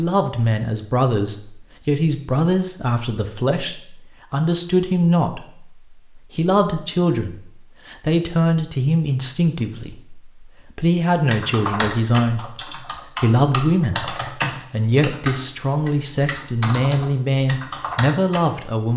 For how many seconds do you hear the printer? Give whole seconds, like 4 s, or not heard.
not heard.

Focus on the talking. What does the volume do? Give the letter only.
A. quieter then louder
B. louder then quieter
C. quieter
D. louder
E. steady
E.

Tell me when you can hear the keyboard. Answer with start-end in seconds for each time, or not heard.
11.3-18.4.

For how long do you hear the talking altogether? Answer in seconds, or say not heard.
19 s.